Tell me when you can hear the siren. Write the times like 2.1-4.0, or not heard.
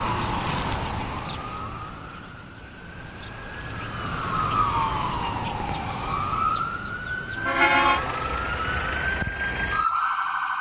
0.0-10.5.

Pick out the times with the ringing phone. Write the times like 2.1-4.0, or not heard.
7.8-9.1.